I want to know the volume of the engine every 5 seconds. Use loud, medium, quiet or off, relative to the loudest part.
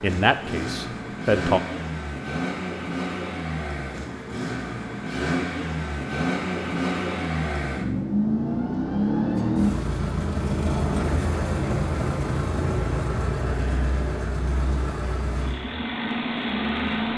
medium, loud, loud, loud.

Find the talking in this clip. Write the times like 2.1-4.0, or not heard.
0.0-1.6.